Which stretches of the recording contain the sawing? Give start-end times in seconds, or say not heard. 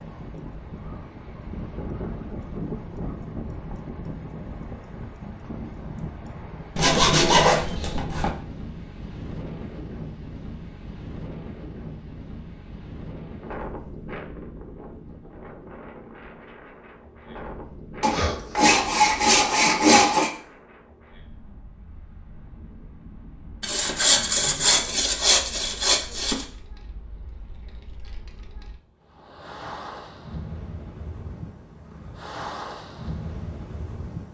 6.8-8.3, 18.0-20.3, 23.6-26.4.